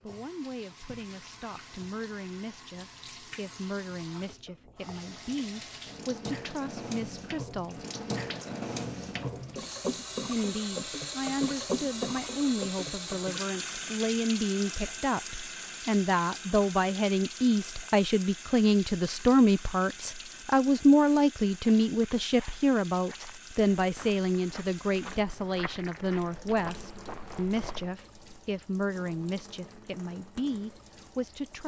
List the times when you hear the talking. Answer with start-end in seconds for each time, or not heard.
0.0-7.8, 10.2-31.6.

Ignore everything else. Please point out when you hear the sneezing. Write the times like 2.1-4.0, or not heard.
not heard.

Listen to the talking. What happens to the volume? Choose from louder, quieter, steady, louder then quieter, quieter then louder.
louder then quieter.